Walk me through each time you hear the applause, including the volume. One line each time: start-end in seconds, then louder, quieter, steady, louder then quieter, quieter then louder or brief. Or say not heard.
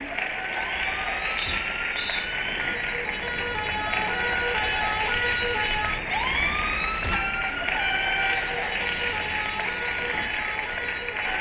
0.0-11.3 steady.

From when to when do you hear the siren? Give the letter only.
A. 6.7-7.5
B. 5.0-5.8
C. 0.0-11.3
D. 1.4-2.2
C.